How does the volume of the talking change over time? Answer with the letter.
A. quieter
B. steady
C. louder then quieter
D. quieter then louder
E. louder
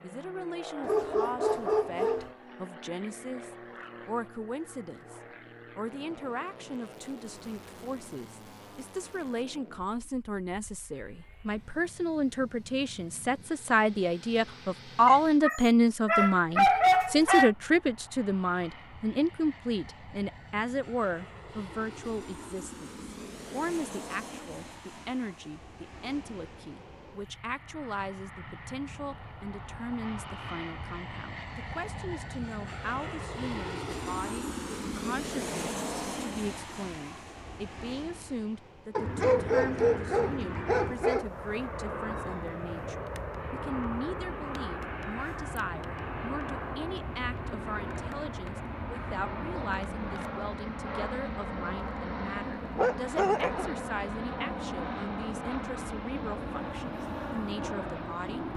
C.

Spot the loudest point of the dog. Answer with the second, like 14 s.
17 s.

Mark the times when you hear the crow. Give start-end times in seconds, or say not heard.
not heard.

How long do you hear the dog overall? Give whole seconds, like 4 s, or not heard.
7 s.